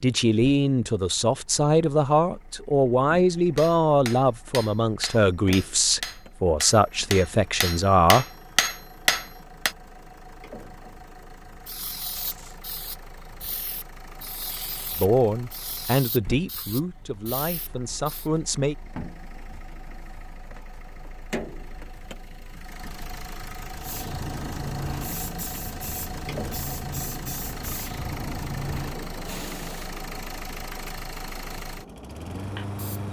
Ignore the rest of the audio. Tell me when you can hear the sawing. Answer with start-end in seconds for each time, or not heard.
not heard.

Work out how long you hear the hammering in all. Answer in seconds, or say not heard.
6 s.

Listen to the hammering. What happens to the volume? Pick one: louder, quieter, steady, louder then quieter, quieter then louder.
louder.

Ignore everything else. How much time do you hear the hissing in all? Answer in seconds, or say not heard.
16 s.